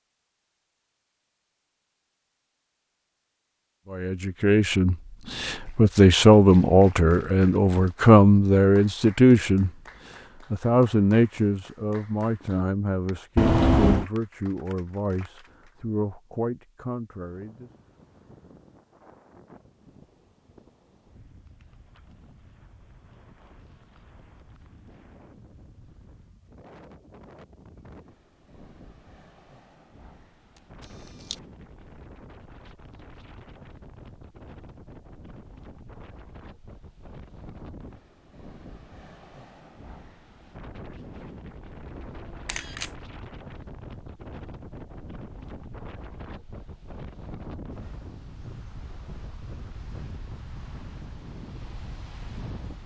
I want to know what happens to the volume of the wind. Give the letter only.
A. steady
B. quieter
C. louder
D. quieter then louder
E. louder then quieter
C.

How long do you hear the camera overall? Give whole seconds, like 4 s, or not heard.
2 s.